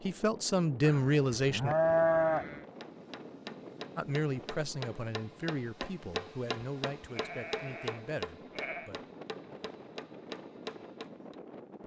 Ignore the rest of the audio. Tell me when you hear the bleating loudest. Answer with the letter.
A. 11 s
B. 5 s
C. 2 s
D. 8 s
C.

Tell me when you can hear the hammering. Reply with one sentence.
You can hear the hammering from 2.8 to 11.4 s.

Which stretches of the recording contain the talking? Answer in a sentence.
You can hear the talking from 0.0 to 1.8 s and from 4.0 to 9.1 s.